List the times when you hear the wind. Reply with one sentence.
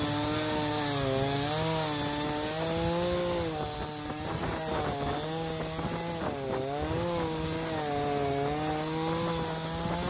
The wind can be heard from 0.0 to 10.0 s.